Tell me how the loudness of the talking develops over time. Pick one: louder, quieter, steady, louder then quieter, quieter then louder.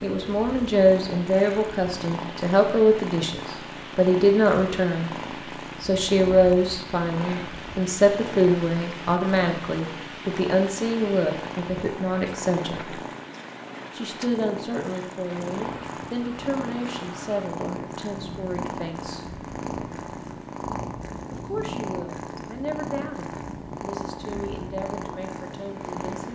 quieter.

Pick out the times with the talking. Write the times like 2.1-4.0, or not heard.
0.0-5.1, 5.8-12.9, 13.9-19.2, 21.3-26.3.